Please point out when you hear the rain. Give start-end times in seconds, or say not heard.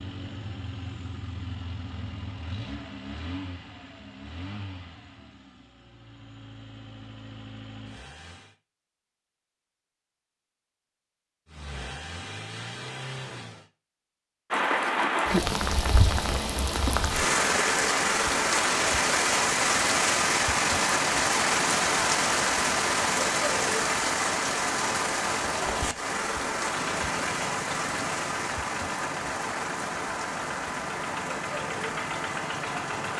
14.5-33.1.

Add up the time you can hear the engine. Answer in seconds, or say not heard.
17 s.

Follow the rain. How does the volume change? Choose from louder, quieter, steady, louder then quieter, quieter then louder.
quieter.